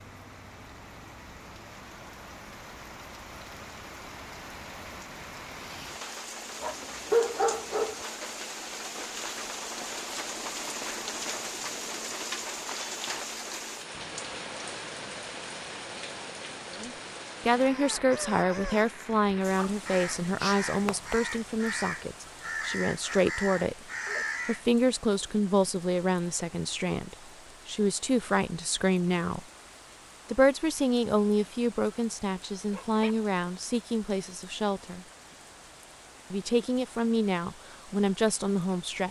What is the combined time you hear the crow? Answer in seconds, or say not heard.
7 s.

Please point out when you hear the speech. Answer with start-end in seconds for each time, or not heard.
16.7-23.8, 24.4-29.4, 30.2-35.0, 36.3-39.0.